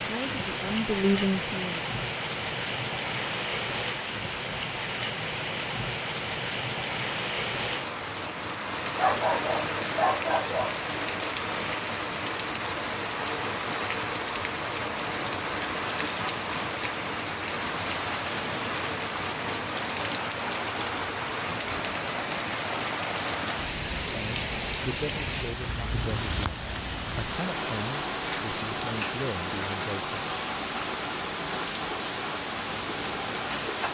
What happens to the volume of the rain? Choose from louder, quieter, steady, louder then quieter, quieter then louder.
steady.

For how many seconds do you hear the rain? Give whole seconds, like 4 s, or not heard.
34 s.